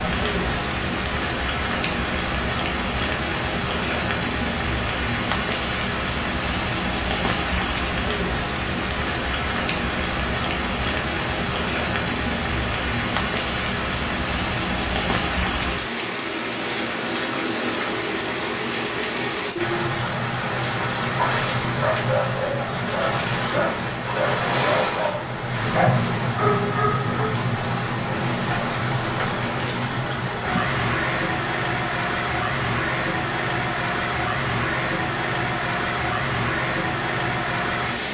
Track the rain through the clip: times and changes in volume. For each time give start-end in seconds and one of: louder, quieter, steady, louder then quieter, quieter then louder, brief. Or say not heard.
0.0-38.0 steady.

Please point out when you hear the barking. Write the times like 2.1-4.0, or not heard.
21.1-27.4.